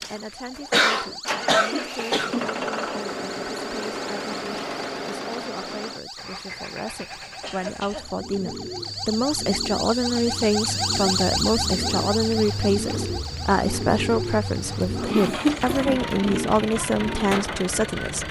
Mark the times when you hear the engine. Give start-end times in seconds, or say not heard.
0.0-18.2.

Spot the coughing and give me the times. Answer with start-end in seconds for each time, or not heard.
0.7-2.5, 7.4-8.2, 15.3-16.0.